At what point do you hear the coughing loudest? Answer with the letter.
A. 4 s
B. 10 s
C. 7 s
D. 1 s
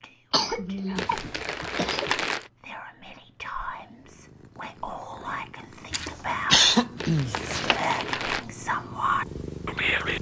C.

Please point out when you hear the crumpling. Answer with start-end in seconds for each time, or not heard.
0.9-2.5, 7.0-8.4.